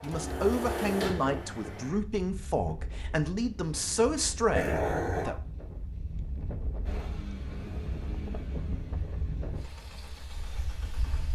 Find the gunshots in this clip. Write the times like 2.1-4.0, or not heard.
not heard.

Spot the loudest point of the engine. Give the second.
1 s.